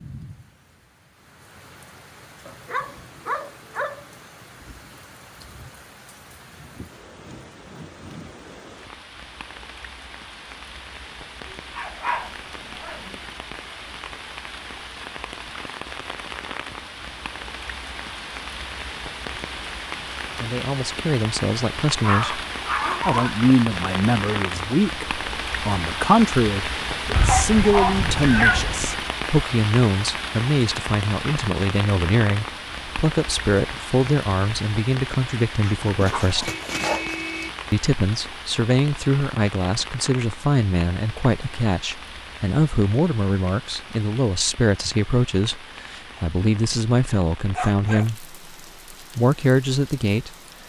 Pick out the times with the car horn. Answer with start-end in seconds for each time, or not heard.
36.4-37.5.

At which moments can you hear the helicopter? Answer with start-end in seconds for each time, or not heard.
not heard.